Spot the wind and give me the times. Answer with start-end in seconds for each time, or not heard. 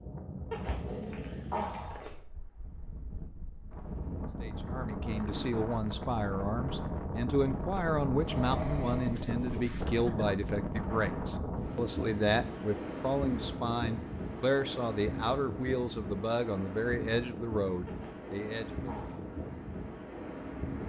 0.0-20.8.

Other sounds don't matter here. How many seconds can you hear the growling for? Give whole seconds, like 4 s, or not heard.
4 s.